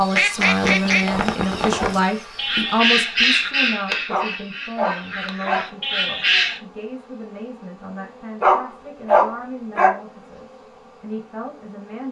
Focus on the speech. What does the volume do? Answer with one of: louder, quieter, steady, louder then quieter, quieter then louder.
quieter.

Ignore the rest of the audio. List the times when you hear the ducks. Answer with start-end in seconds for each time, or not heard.
0.1-6.6.